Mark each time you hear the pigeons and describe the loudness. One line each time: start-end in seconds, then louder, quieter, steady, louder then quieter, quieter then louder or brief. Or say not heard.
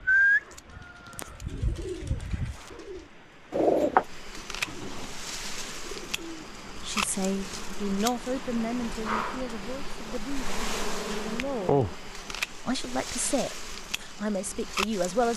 0.0-6.4 louder then quieter.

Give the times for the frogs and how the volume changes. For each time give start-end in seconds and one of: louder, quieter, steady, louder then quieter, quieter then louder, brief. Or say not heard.
not heard.